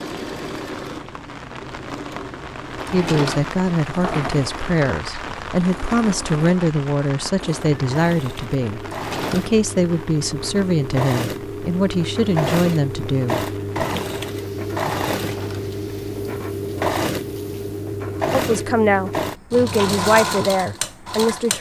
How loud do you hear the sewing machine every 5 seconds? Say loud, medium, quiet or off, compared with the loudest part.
medium, medium, loud, loud, loud.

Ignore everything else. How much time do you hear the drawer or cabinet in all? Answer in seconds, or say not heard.
3 s.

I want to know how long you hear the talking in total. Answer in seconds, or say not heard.
14 s.